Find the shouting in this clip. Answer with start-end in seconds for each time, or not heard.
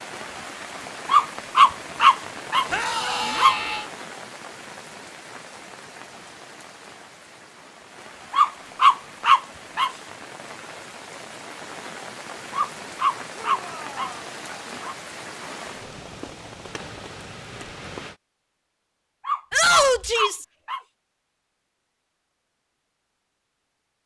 2.7-3.9, 13.4-14.3, 19.5-20.4.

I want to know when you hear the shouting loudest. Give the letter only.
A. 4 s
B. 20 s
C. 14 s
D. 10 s
B.